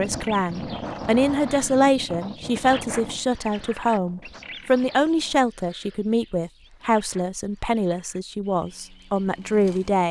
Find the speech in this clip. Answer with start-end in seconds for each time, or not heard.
0.0-10.0.